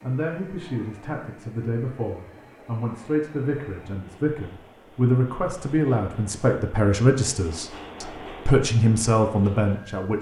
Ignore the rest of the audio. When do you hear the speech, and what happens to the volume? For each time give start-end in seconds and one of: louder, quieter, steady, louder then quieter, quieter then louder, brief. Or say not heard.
0.0-10.1 louder.